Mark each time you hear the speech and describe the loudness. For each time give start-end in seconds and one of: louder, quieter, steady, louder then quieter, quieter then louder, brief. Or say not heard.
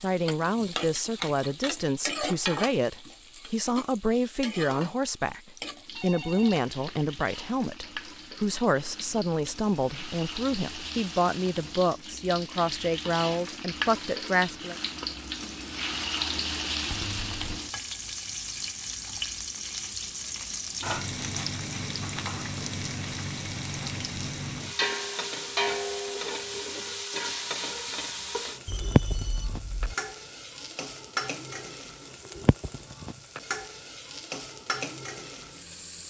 0.0-14.8 steady.